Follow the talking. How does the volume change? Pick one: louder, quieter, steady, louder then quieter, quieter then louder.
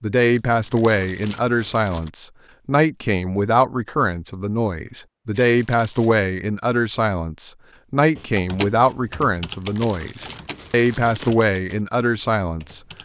steady.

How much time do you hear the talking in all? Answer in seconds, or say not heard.
13 s.